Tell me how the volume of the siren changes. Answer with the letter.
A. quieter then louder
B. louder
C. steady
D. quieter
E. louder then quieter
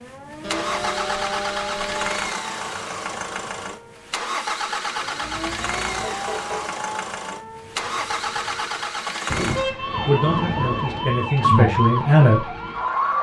A.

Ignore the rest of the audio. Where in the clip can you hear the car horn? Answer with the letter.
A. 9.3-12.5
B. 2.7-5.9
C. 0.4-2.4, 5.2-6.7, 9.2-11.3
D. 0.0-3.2
C.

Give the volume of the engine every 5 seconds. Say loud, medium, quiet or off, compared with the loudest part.
loud, loud, quiet.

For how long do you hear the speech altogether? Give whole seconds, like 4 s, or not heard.
3 s.